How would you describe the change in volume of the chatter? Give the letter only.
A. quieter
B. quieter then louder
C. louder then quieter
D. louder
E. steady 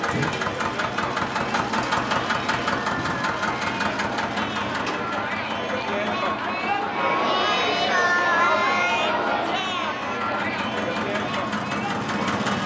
C.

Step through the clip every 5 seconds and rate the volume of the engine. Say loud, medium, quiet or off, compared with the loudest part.
loud, medium, loud.